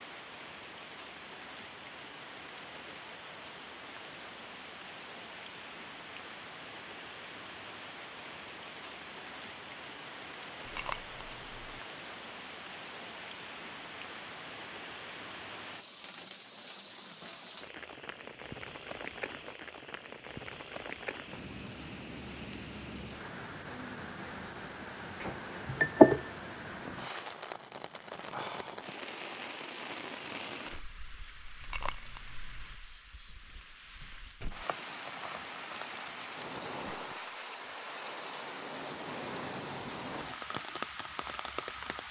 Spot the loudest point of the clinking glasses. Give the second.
26 s.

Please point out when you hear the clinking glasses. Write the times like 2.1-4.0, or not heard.
10.7-11.3, 25.2-26.2, 31.6-32.3.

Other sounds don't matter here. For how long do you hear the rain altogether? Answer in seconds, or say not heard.
42 s.